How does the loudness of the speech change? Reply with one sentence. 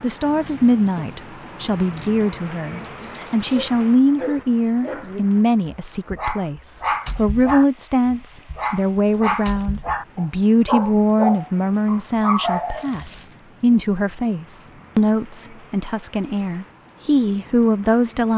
The loudness of the speech stays about the same.